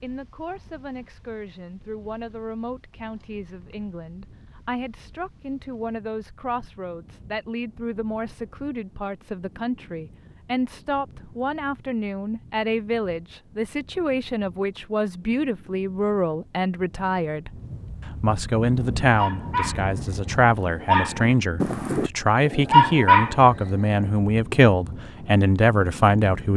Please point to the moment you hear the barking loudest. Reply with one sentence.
The loudest moment of the barking is at 23 seconds.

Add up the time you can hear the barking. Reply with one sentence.
You can hear the barking for 5 seconds altogether.